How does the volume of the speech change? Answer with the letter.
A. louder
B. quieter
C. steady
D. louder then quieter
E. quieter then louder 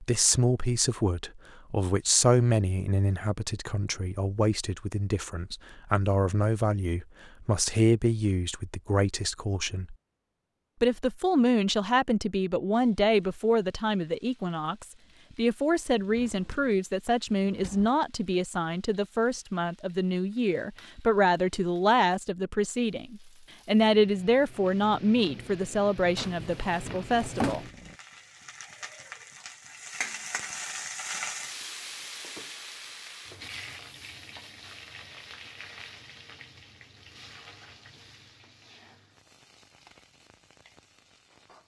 C.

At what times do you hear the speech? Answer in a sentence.
You can hear the speech from 0.0 to 9.9 s and from 10.8 to 27.6 s.